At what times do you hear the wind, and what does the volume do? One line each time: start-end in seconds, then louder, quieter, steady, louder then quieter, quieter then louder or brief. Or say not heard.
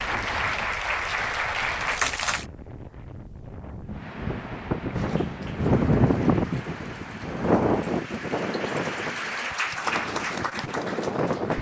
0.0-11.5 louder then quieter.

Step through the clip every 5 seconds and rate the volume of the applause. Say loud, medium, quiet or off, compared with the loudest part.
loud, medium, medium.